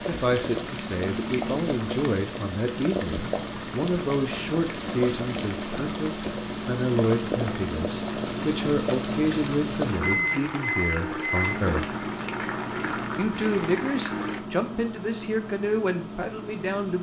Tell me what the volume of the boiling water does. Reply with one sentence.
The volume of the boiling water stays about the same.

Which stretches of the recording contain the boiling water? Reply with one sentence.
The boiling water can be heard from 0.0 to 14.4 s.